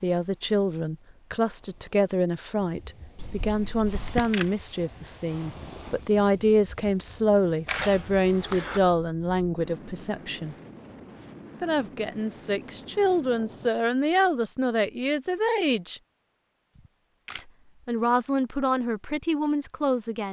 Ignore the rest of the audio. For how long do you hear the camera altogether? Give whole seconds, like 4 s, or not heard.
3 s.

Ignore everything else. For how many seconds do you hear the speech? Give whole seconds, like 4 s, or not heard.
18 s.